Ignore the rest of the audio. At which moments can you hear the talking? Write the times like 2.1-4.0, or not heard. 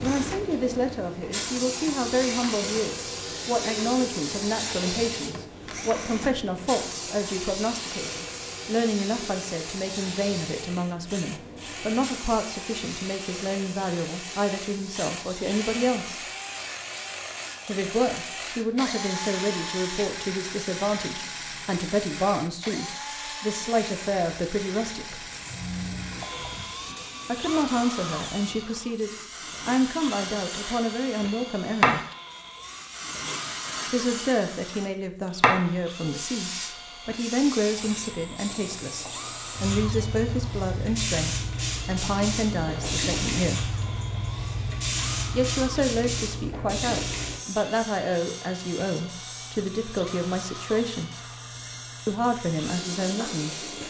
0.0-16.2, 17.6-25.2, 27.2-32.0, 33.9-43.7, 45.3-51.1, 52.0-53.6.